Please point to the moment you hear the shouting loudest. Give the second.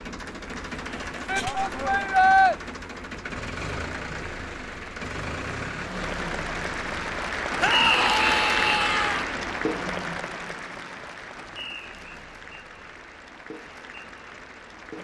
2 s.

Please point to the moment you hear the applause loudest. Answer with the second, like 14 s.
8 s.